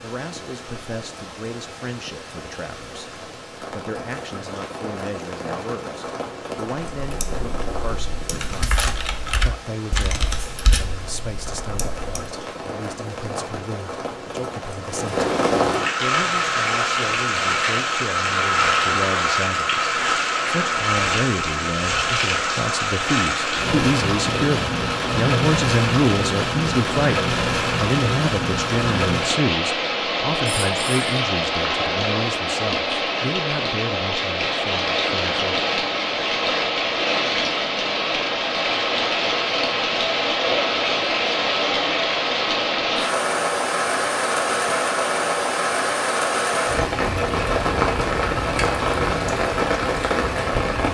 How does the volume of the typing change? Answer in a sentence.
The volume of the typing goes up, then down.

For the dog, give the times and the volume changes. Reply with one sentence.
The dog can't be heard in this clip.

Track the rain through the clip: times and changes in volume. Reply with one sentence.
You can hear the rain from 0.0 to 50.8 s, getting louder.